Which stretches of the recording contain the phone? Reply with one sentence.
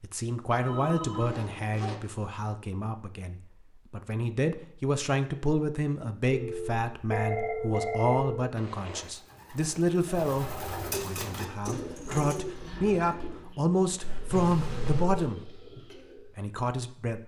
You can hear the phone from 0.6 to 1.8 s, from 6.3 to 8.4 s and from 14.0 to 15.3 s.